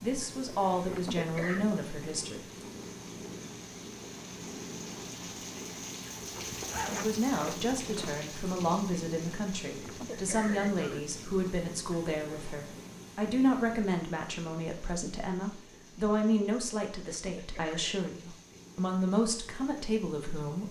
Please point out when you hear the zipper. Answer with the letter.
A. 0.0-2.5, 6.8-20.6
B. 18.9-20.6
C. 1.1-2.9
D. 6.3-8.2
D.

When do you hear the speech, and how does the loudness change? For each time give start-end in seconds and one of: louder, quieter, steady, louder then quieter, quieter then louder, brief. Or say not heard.
0.0-2.5 brief
6.8-20.6 steady.